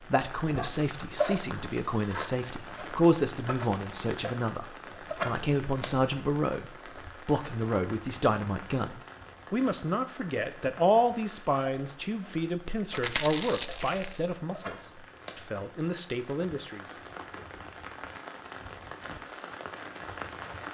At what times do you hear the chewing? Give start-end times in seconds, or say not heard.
12.8-14.3.